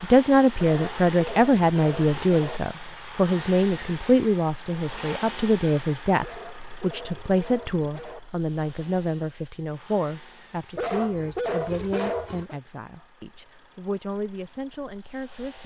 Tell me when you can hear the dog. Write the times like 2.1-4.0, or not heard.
0.6-2.6, 6.2-8.2, 10.8-12.6.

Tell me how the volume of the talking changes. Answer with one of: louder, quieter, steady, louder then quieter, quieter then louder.
quieter.